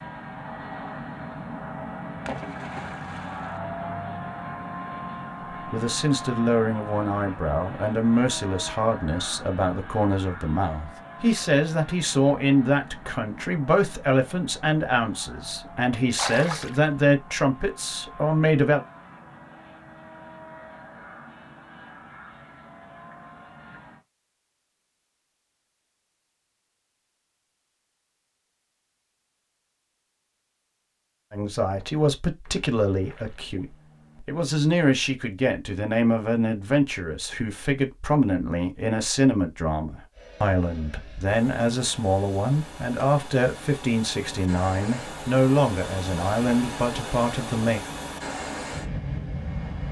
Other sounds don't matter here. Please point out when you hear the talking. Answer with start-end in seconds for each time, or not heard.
5.7-18.8, 31.3-47.9.